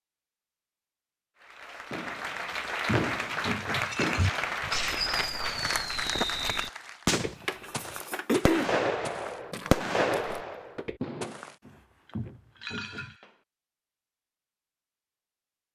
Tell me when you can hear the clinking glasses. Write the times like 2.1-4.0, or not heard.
3.7-5.0, 12.1-13.3.